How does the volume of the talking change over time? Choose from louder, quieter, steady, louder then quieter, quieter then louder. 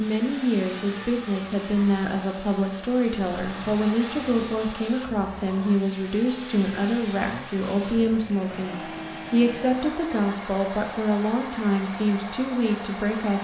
steady.